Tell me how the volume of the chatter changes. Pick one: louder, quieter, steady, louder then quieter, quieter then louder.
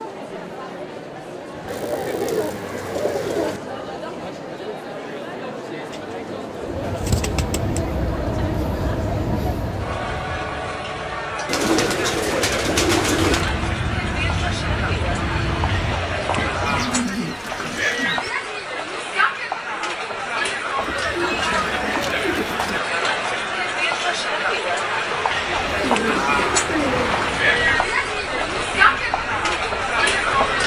louder.